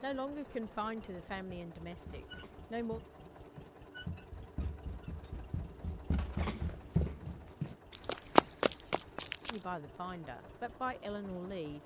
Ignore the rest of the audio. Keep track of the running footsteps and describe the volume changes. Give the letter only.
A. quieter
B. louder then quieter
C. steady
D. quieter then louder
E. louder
E.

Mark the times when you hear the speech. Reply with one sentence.
You can hear the speech from 0.0 to 3.0 s and from 9.4 to 11.8 s.